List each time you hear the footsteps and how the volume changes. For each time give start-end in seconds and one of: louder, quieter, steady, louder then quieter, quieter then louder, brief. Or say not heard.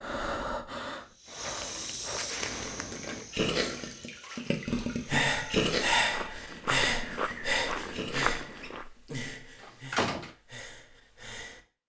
0.9-8.9 quieter then louder.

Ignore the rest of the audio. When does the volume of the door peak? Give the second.
10 s.